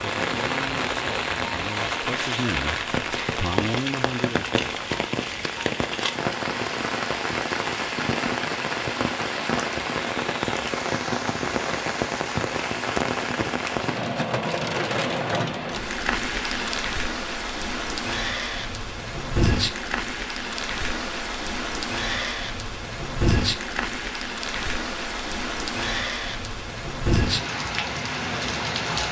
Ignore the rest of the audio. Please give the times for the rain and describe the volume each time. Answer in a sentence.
The rain can be heard from 0.0 to 29.0 s, at a steady volume.